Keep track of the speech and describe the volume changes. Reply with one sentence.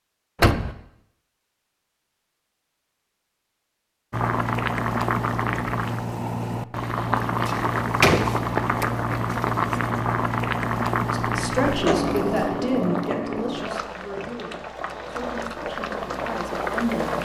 The volume of the speech goes down.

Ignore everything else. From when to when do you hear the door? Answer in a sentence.
The door can be heard from 0.3 to 0.8 s, from 7.5 to 9.4 s and from 11.7 to 12.2 s.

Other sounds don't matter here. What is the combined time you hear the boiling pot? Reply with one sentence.
You can hear the boiling pot for 13 seconds altogether.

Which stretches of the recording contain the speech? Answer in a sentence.
You can hear the speech from 11.1 to 17.1 s.